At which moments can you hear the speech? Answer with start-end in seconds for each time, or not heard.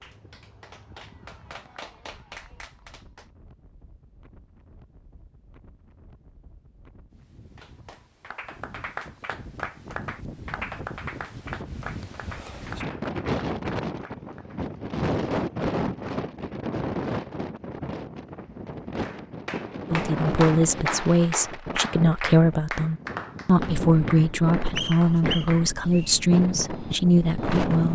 19.9-27.9.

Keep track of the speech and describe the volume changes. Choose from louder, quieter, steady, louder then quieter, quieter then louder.
steady.